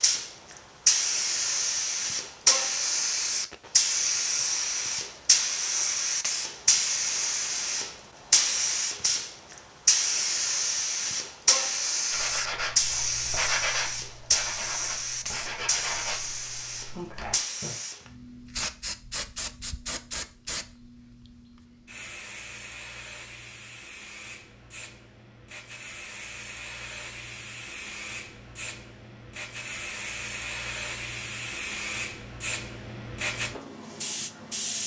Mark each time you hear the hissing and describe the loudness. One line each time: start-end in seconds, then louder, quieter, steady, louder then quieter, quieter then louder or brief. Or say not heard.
0.0-34.8 quieter then louder.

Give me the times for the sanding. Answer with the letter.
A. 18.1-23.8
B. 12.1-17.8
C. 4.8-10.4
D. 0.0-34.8
B.